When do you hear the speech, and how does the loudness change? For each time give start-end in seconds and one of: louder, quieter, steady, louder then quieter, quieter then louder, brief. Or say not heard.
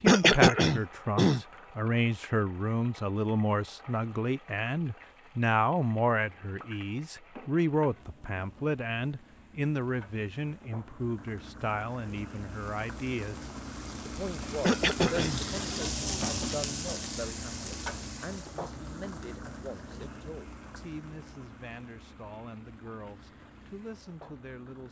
0.0-24.8 quieter.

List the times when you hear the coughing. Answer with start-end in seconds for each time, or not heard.
0.1-1.4, 14.6-15.4.